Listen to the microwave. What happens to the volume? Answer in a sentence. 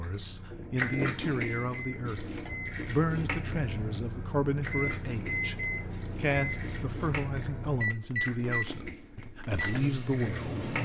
The loudness of the microwave goes up.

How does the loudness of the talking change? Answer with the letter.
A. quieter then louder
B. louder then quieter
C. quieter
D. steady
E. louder
D.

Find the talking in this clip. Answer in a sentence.
You can hear the talking from 0.0 to 10.6 s.